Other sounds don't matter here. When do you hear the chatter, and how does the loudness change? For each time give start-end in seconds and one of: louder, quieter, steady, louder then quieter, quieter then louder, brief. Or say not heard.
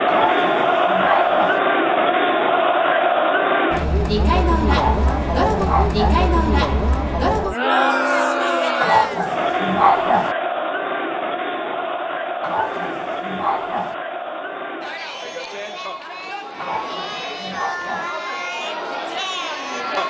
0.0-20.0 quieter.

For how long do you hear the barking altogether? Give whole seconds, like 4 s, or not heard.
8 s.